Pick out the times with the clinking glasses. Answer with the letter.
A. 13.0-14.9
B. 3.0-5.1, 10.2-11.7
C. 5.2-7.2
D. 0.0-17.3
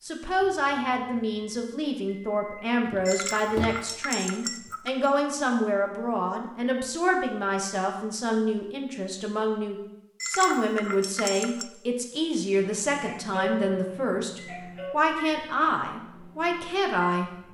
B.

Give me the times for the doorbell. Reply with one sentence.
You can hear the doorbell from 13.0 to 14.9 s.